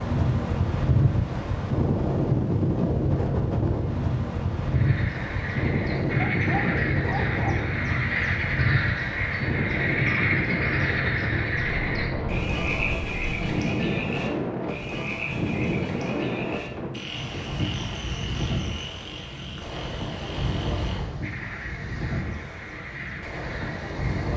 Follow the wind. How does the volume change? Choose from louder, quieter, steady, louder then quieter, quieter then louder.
quieter.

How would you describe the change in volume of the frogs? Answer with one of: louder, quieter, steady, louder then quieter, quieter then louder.
quieter.